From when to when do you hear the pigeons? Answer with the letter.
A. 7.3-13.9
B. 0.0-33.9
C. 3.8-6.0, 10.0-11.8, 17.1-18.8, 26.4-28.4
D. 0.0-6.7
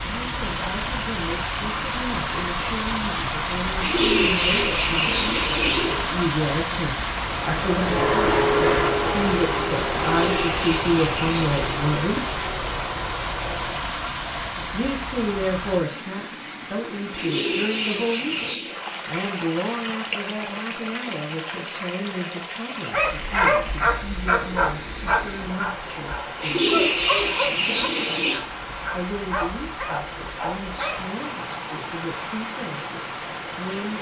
C.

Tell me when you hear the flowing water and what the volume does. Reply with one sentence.
You can hear the flowing water from 0.0 to 33.9 s, getting quieter.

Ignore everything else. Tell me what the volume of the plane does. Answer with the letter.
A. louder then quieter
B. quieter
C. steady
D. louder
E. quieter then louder
B.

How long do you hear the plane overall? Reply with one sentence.
The plane can be heard for 7 seconds in total.